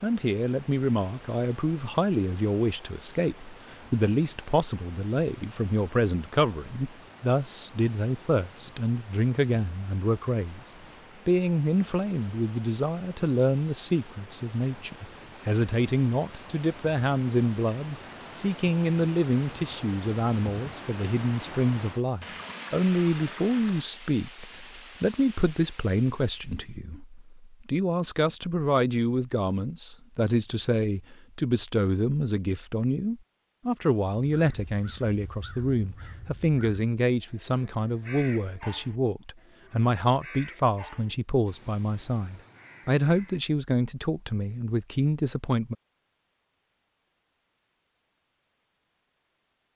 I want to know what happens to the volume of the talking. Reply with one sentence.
The loudness of the talking stays about the same.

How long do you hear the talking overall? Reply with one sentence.
You can hear the talking for 46 seconds altogether.